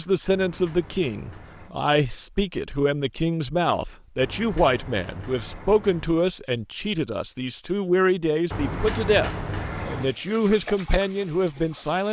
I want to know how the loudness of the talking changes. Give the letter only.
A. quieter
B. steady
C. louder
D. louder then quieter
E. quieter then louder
B.